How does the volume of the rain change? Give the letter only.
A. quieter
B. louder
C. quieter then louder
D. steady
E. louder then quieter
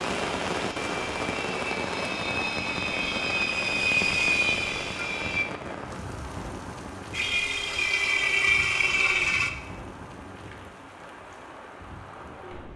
A.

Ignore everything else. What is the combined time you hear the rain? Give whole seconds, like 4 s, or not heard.
13 s.